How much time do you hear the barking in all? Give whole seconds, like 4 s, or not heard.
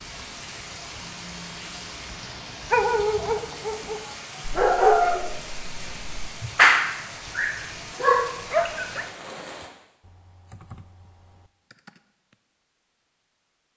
6 s.